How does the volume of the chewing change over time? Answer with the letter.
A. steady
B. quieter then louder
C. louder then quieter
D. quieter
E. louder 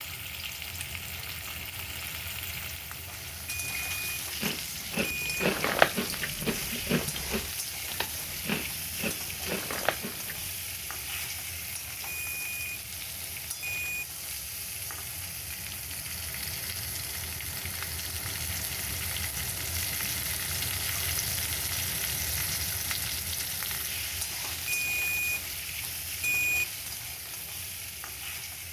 D.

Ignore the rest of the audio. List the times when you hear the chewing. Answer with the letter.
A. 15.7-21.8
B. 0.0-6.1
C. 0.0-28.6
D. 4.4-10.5
D.